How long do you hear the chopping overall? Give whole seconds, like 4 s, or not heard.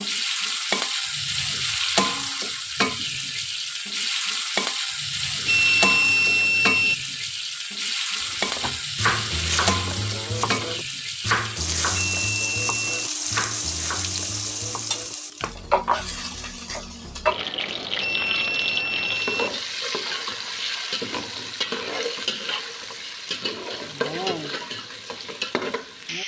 7 s.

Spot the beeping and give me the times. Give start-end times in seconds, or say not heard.
5.5-7.0, 12.2-13.1, 18.0-19.5.